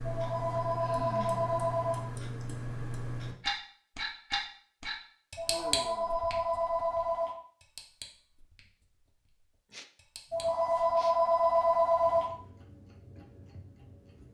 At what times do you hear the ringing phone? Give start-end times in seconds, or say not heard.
0.1-2.0, 5.3-7.3, 10.3-12.2.